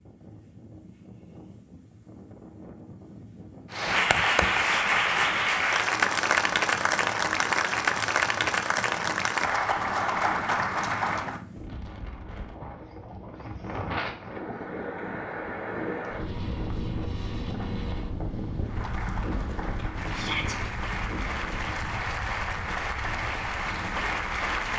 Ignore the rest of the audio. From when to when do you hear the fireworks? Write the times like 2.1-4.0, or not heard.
not heard.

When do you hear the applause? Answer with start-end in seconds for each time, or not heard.
3.7-11.4, 18.6-24.7.